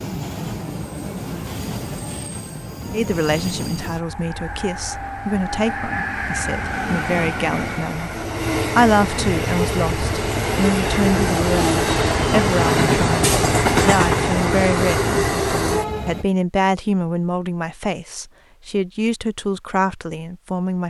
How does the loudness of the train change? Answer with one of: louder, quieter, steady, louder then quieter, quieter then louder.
louder.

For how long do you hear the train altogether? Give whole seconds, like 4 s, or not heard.
16 s.